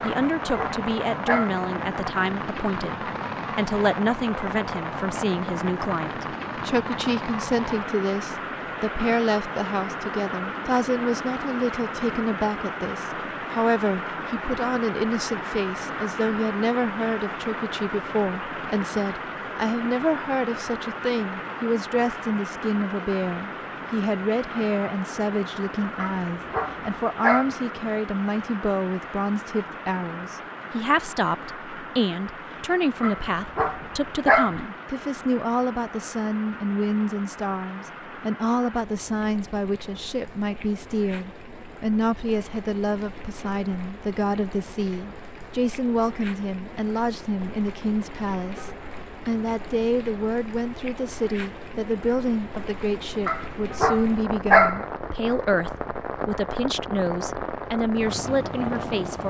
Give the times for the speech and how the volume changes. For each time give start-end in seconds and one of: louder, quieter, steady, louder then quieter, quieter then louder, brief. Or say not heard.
0.0-59.2 steady.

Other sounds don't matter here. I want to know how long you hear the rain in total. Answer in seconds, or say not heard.
59 s.